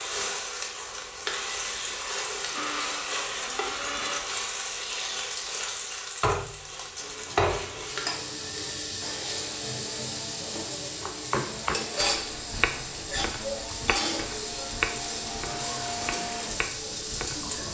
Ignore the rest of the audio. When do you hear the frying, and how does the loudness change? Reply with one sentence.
The frying can be heard from 0.0 to 17.6 s, at a steady volume.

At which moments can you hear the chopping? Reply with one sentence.
You can hear the chopping from 11.0 to 17.6 s.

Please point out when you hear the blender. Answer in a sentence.
The blender can be heard from 2.5 to 4.2 s and from 7.0 to 17.6 s.